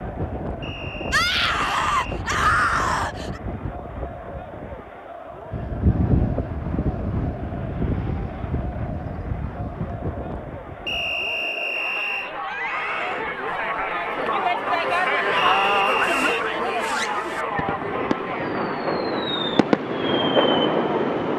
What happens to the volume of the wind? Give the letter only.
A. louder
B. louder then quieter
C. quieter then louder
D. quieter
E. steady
B.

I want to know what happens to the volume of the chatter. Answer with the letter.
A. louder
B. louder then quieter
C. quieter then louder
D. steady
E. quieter
A.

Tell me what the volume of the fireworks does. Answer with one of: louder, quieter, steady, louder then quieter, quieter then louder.
louder.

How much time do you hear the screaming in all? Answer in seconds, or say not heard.
3 s.